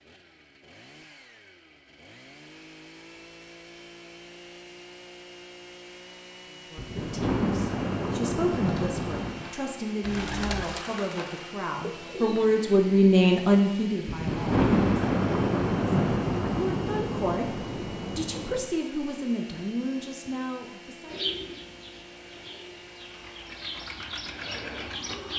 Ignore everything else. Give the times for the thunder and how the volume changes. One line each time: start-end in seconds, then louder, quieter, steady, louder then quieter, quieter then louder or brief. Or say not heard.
6.8-9.5 brief
14.1-18.7 quieter.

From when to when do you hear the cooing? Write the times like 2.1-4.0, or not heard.
8.6-12.6, 21.1-25.3.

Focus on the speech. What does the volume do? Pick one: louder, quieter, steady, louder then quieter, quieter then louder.
louder then quieter.